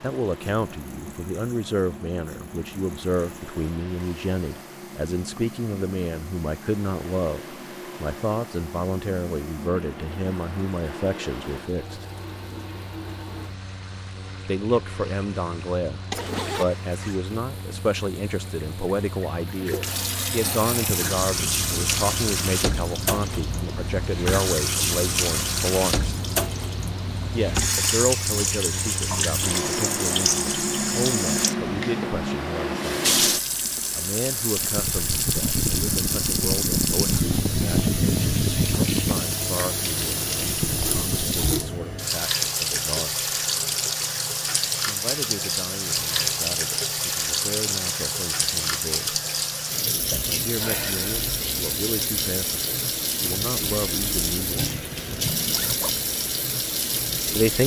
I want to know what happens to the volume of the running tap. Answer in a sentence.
The volume of the running tap goes up.